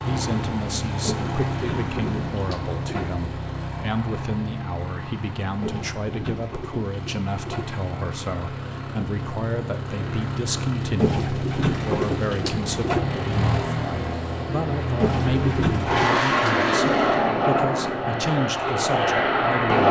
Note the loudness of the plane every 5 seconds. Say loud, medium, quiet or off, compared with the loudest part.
medium, quiet, medium, loud.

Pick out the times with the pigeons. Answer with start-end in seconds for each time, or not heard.
1.1-3.0, 5.6-7.7, 11.0-13.0, 15.0-16.2.